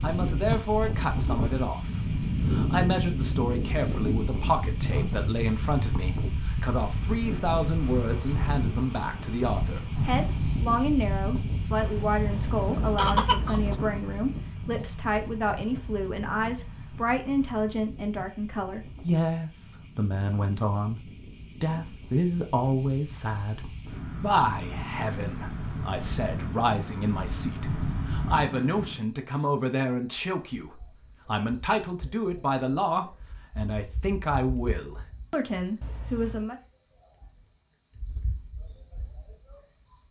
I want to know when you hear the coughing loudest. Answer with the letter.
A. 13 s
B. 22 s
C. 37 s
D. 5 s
A.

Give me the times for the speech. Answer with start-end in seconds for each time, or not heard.
0.0-36.5.